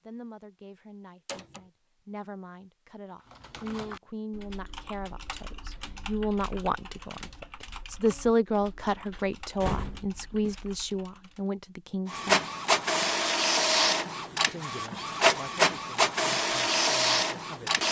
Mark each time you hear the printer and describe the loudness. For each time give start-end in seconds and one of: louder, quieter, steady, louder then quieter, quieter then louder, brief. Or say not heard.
12.1-17.8 steady.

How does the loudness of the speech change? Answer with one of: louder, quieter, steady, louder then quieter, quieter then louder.
louder then quieter.